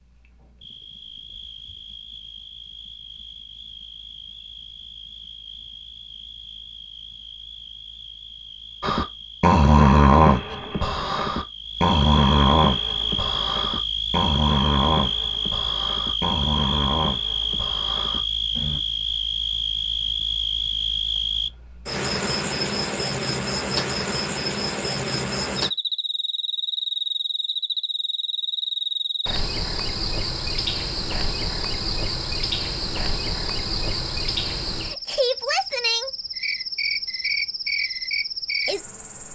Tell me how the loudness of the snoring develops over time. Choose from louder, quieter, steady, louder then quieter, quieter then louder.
quieter.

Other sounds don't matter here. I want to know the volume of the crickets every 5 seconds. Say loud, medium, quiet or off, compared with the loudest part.
quiet, quiet, loud, loud, loud, loud, loud, loud.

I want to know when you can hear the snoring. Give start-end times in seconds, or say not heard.
8.8-18.8.